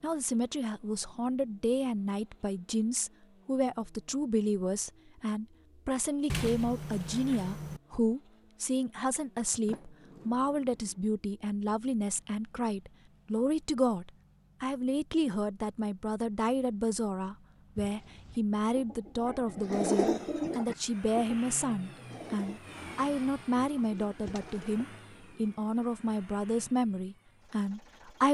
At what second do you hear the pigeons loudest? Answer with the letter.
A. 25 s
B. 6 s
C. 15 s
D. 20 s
D.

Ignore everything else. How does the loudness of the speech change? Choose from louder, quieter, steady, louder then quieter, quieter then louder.
steady.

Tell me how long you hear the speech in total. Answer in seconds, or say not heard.
28 s.